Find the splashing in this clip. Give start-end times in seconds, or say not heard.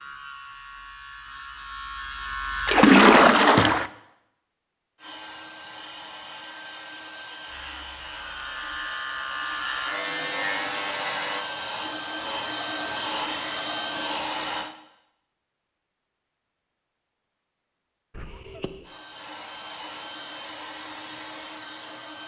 2.6-3.9.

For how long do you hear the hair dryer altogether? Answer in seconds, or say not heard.
13 s.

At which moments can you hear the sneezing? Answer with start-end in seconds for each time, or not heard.
18.1-18.9.